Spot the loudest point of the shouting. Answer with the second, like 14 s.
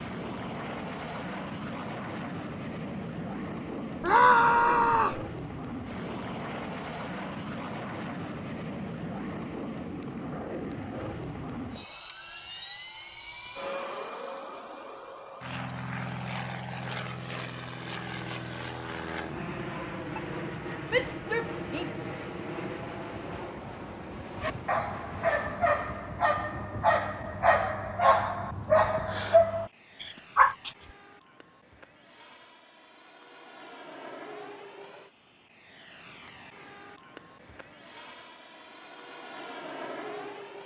4 s.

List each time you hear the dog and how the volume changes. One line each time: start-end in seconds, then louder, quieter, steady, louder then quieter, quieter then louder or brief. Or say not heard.
24.4-30.9 louder.